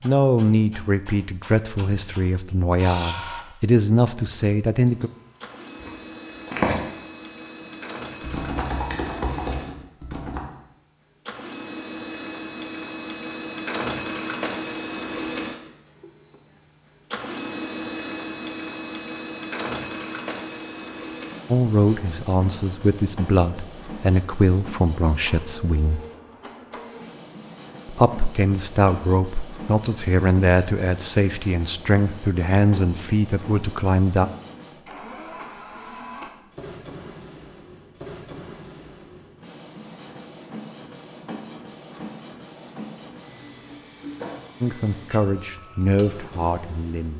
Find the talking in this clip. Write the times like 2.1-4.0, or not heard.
0.0-5.1, 21.5-26.0, 27.9-34.2, 44.6-47.1.